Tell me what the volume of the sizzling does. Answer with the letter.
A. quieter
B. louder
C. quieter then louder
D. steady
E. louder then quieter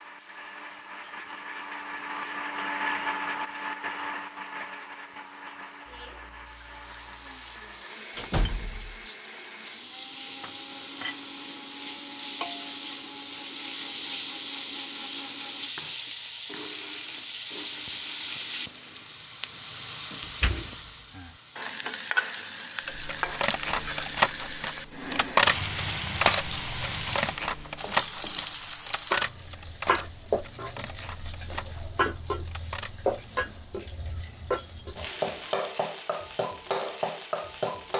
B.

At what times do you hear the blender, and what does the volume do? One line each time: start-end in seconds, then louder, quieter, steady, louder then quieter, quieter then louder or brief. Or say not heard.
0.0-19.2 quieter.